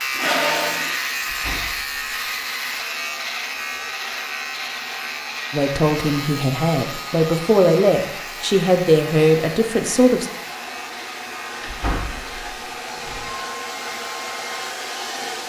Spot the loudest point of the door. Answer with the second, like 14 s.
12 s.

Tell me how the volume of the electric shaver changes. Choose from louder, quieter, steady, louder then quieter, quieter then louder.
quieter.